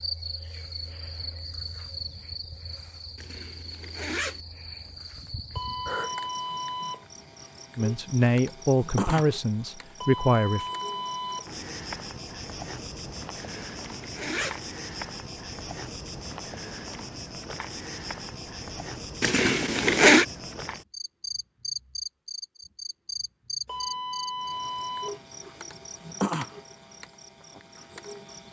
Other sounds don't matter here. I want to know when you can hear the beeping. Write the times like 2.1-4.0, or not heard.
5.5-7.0, 10.0-11.5, 23.6-25.2.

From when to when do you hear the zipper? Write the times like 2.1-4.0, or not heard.
3.1-4.4, 13.4-14.6, 19.2-20.2.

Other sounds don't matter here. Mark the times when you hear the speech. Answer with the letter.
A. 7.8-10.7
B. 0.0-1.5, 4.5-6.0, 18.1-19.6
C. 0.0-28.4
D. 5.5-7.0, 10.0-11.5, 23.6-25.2
A.